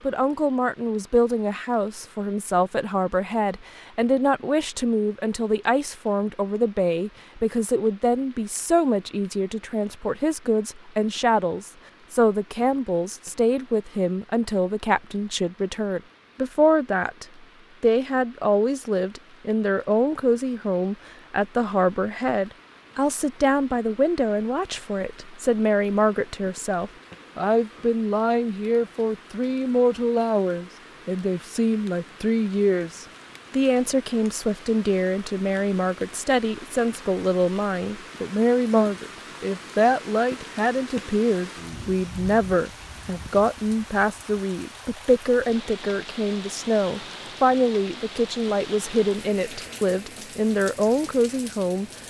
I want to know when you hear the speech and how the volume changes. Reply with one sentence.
You can hear the speech from 0.0 to 51.9 s, at a steady volume.